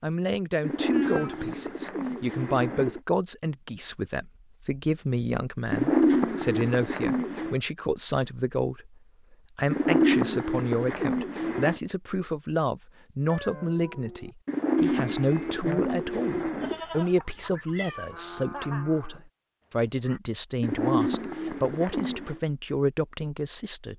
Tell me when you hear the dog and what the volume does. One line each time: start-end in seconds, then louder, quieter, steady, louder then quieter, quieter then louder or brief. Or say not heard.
not heard.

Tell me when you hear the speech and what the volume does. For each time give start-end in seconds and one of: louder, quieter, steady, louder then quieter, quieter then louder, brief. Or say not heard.
0.0-23.9 steady.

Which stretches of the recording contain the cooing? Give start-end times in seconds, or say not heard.
0.6-3.0, 5.7-7.5, 9.7-11.8, 14.4-16.8, 20.6-22.4.